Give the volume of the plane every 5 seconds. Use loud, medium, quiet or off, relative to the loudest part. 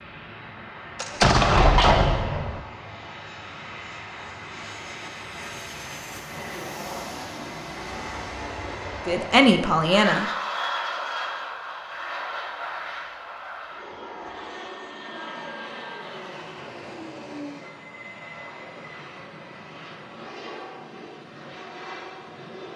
medium, loud, loud, medium, medium.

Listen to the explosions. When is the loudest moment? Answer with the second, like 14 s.
1 s.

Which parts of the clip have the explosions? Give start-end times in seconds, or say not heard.
0.9-2.6.